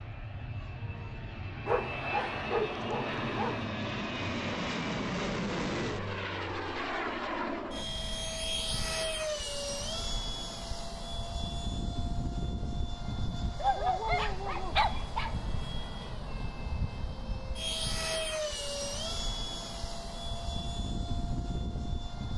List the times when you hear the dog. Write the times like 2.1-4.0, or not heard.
1.6-3.7, 13.6-15.3.